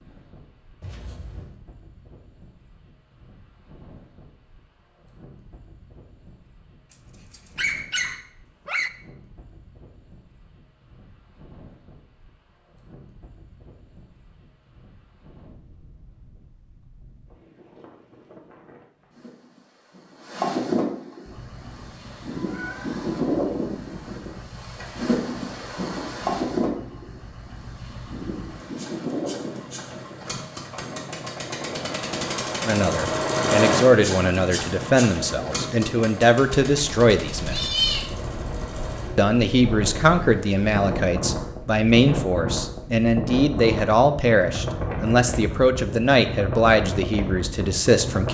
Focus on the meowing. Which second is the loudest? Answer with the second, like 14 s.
38 s.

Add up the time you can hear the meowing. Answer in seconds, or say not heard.
2 s.